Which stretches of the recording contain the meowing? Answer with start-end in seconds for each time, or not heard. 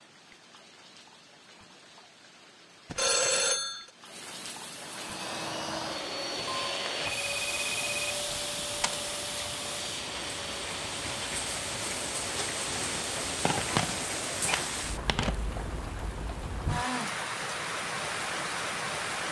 not heard.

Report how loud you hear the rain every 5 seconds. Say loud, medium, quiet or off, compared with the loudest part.
quiet, medium, loud, loud.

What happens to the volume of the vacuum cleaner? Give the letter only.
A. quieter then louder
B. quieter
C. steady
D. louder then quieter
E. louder
B.